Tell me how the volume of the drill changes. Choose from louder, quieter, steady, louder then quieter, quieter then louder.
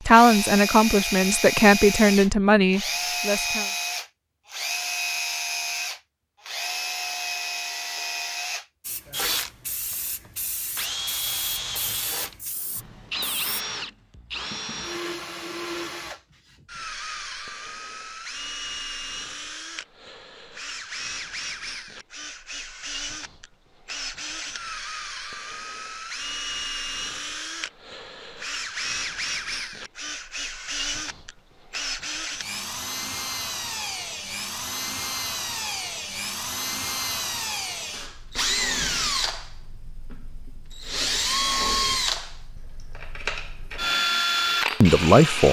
quieter then louder.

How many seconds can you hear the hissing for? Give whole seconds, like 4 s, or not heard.
5 s.